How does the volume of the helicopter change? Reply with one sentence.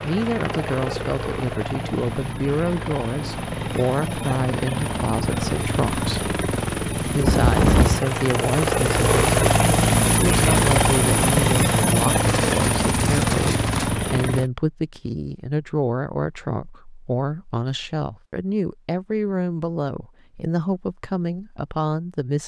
The volume of the helicopter goes up.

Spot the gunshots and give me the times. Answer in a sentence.
You can hear the gunshots from 12.2 to 13.9 s.